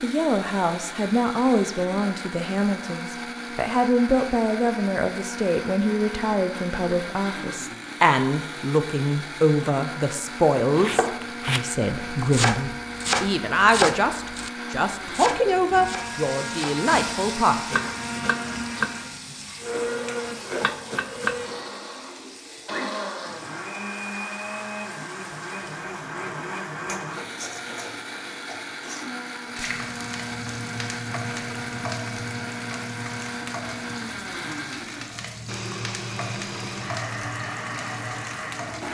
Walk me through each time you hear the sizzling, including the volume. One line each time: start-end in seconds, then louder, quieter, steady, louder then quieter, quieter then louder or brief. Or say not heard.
15.8-38.8 quieter then louder.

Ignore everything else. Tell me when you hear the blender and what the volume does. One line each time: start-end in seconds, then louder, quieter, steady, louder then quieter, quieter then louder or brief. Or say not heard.
0.0-38.8 steady.